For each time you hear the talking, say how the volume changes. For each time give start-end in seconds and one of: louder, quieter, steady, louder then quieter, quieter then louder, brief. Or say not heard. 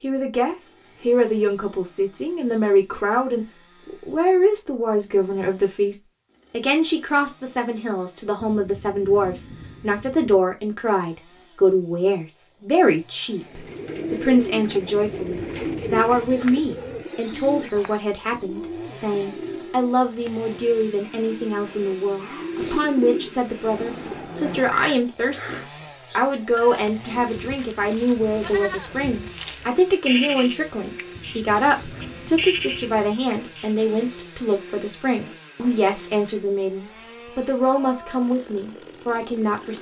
0.0-39.7 steady.